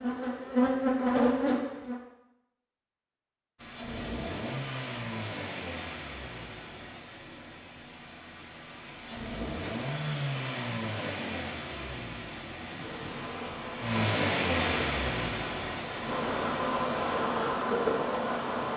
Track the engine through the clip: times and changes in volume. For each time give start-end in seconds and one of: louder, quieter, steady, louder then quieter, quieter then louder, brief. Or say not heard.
3.5-17.2 quieter then louder.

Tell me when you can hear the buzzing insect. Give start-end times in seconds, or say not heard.
0.0-2.0, 12.4-18.7.